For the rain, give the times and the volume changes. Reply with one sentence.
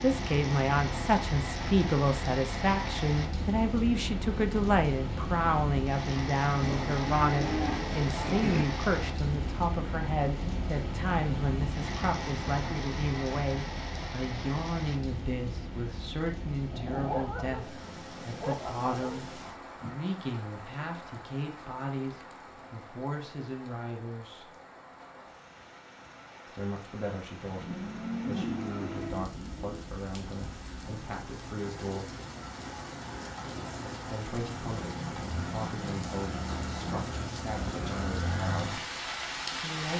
The rain can be heard from 0.0 to 39.9 s, getting quieter then louder.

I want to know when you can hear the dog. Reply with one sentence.
The dog can be heard from 16.7 to 19.9 s.